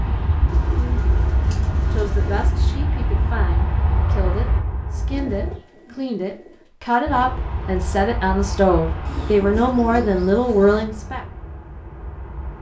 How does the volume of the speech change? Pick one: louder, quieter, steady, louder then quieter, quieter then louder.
louder.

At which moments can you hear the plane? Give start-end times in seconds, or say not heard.
0.0-5.6, 7.0-12.5.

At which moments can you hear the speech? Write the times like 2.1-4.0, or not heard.
1.9-11.2.